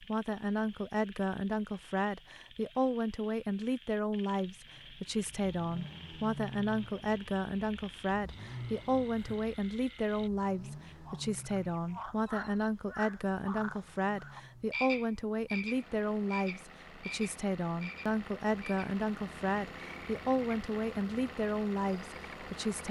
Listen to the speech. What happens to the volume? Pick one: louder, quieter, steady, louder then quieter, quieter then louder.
steady.